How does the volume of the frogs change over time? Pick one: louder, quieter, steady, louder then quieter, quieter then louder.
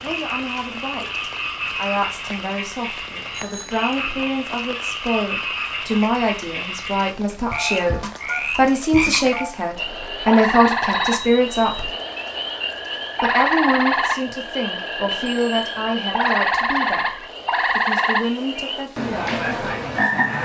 louder.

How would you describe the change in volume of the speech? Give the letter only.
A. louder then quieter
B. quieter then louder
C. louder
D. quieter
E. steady
A.